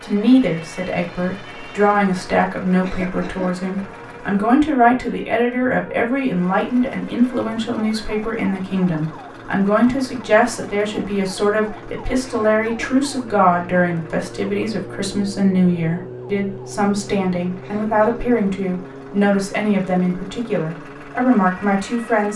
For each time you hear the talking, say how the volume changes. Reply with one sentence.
The talking can be heard from 0.0 to 22.3 s, at a steady volume.